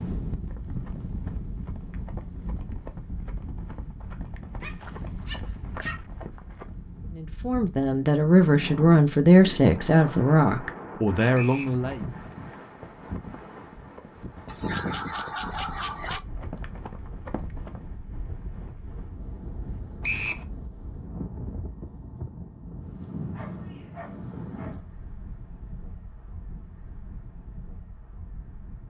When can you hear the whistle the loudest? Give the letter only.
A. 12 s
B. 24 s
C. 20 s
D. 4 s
C.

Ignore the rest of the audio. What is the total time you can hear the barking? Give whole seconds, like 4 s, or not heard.
5 s.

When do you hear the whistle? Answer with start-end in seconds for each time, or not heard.
11.3-11.8, 20.0-20.4.